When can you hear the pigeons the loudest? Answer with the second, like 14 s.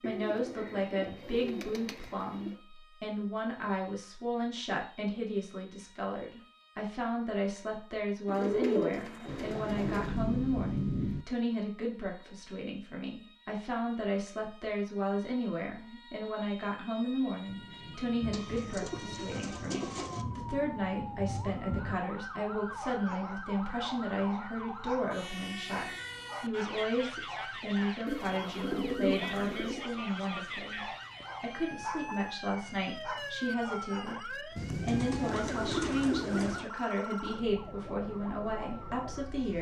9 s.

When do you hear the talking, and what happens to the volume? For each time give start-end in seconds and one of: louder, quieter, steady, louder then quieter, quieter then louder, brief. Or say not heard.
0.0-30.8 steady
31.4-39.5 steady.